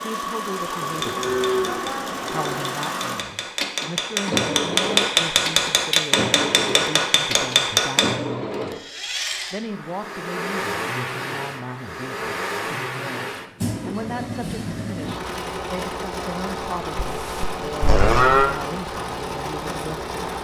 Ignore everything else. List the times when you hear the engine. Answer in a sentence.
The engine can be heard from 0.0 to 20.3 s.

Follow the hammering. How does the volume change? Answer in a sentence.
The loudness of the hammering goes up.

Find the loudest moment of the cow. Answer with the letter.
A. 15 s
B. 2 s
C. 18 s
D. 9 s
C.